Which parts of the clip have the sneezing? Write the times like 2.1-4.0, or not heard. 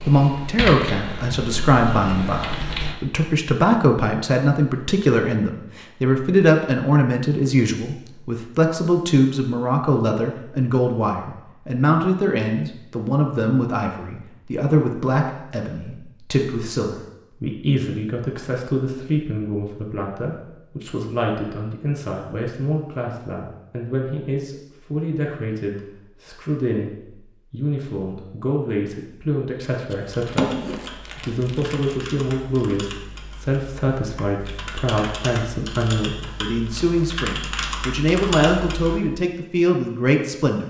not heard.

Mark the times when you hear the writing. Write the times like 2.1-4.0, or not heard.
not heard.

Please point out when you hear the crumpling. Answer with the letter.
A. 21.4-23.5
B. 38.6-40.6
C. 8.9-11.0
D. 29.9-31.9
D.